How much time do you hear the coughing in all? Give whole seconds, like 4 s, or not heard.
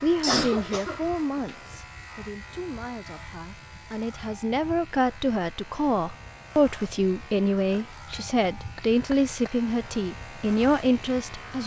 3 s.